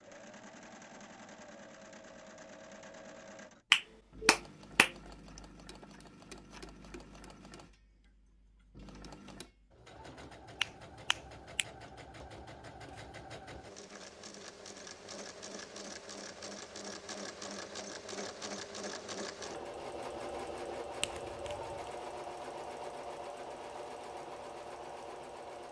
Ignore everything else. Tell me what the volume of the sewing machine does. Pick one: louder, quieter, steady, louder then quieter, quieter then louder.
louder.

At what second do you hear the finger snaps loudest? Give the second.
4 s.